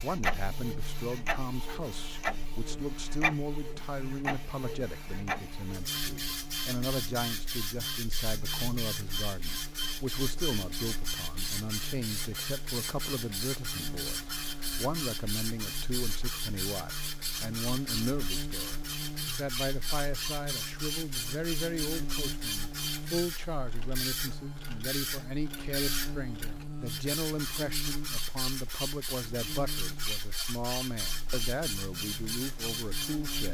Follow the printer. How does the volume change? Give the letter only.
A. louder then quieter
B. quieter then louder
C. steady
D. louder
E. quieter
C.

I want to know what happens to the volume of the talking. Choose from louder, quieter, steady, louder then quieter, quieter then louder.
steady.